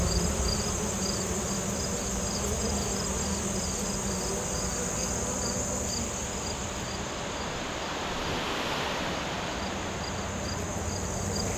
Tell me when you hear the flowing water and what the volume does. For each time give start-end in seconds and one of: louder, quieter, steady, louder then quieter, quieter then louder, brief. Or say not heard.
0.0-11.5 louder.